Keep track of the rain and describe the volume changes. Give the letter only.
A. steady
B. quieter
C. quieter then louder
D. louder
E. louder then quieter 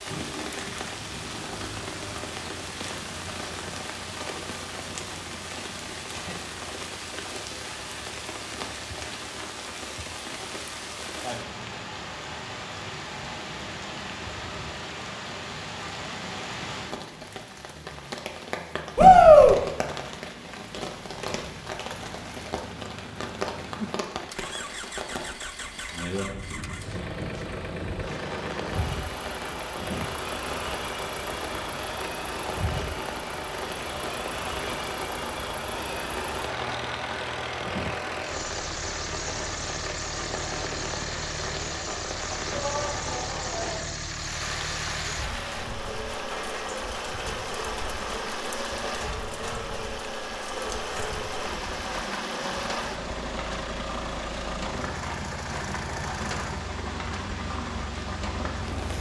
A.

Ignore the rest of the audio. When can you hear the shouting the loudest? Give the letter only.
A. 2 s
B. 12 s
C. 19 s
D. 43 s
C.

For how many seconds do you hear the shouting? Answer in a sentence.
The shouting can be heard for 2 seconds in total.